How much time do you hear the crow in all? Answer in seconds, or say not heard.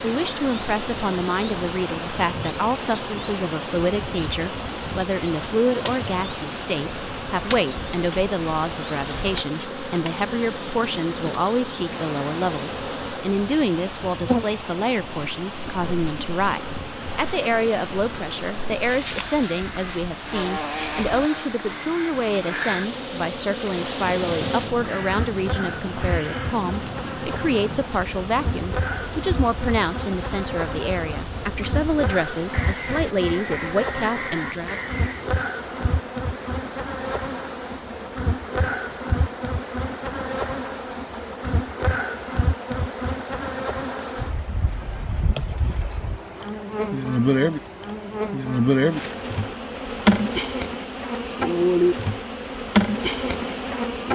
11 s.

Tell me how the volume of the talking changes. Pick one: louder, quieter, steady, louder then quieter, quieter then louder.
steady.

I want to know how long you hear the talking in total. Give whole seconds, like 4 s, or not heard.
35 s.